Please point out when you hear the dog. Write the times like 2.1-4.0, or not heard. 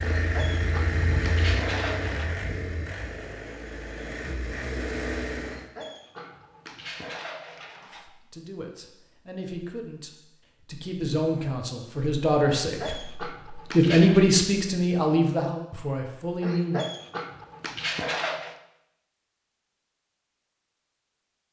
0.0-2.3, 5.4-8.1, 12.4-14.2, 16.4-18.6.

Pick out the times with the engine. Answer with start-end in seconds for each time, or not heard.
0.0-5.7.